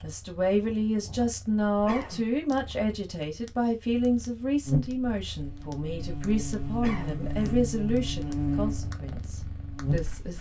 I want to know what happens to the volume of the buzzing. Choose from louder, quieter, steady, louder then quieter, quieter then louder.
louder then quieter.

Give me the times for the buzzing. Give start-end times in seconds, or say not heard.
4.7-10.1.